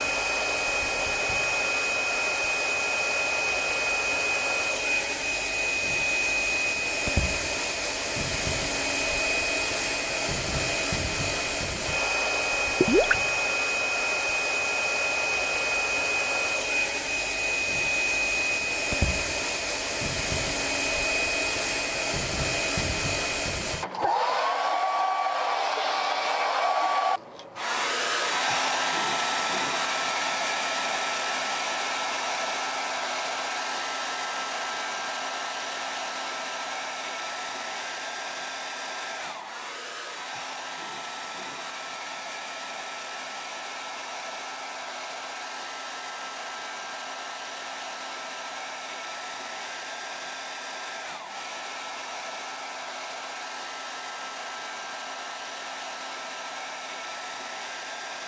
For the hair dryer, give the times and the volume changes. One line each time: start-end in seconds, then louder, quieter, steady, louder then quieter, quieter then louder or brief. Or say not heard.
0.0-58.2 quieter.